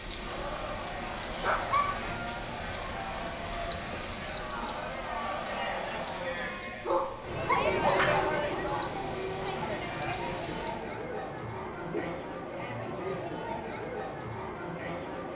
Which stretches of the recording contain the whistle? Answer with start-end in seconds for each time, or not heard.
3.7-4.5, 8.8-10.8.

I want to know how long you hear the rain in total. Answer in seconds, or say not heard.
11 s.